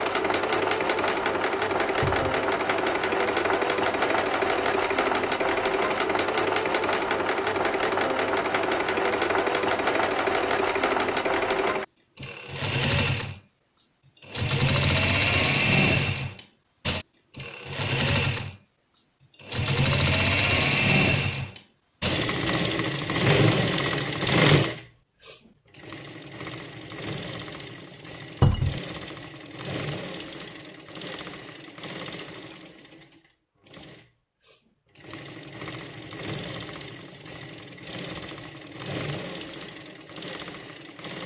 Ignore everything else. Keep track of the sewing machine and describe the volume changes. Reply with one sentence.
The loudness of the sewing machine goes down.